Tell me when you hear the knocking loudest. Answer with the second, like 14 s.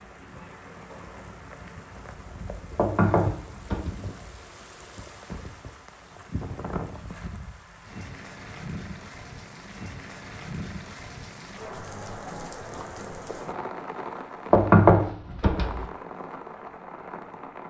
15 s.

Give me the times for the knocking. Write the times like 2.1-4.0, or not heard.
2.8-3.9, 14.5-15.8.